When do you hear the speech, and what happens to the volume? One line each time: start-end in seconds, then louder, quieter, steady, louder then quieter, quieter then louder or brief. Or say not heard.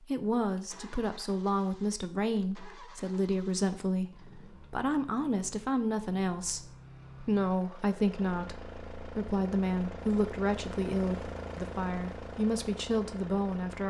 0.0-13.8 steady.